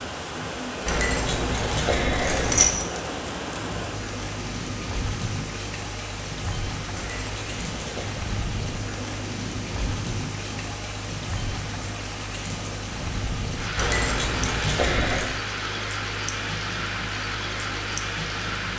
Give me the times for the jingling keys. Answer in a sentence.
The jingling keys can be heard from 0.8 to 2.6 s, from 7.0 to 8.2 s and from 13.8 to 15.3 s.